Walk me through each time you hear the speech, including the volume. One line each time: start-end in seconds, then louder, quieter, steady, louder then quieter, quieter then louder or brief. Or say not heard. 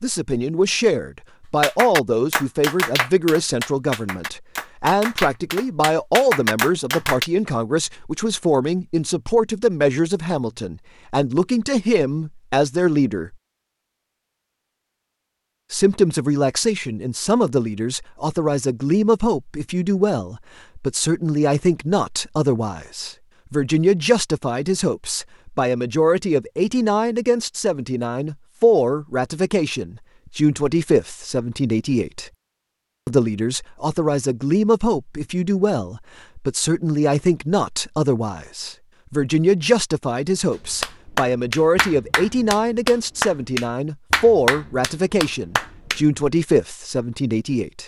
0.0-13.3 steady
15.7-32.3 steady
33.0-47.8 steady.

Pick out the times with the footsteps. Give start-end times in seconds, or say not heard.
not heard.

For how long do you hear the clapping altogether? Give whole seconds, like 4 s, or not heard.
11 s.